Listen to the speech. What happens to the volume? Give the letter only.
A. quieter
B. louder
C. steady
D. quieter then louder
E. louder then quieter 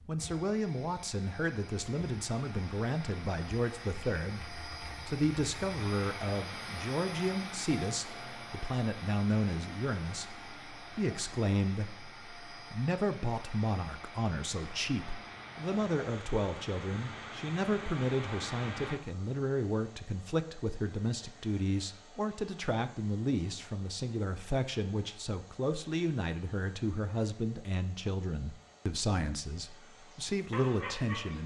C.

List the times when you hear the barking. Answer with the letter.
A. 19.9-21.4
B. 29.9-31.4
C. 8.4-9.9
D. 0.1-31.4
B.